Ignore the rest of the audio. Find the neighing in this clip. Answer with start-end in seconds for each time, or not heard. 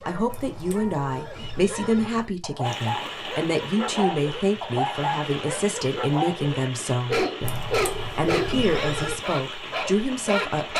0.2-2.3, 7.4-9.2.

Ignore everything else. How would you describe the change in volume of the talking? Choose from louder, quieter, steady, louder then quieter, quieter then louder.
steady.